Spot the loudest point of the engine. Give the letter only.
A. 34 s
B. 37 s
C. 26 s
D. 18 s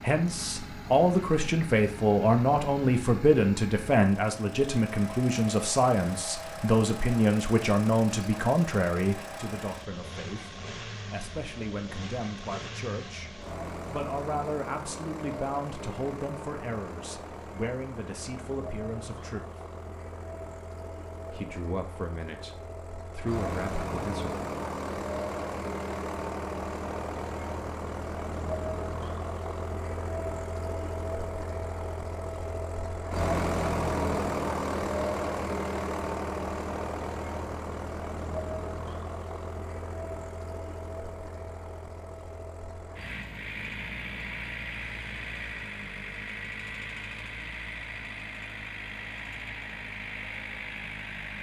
A.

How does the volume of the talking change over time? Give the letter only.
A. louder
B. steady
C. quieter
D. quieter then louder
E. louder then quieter
C.